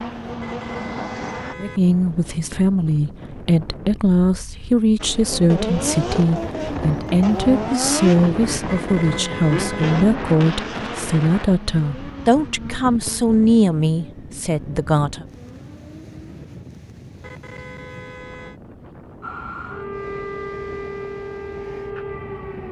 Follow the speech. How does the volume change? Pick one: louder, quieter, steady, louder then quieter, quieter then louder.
steady.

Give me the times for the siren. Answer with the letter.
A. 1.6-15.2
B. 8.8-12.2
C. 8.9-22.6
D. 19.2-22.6
D.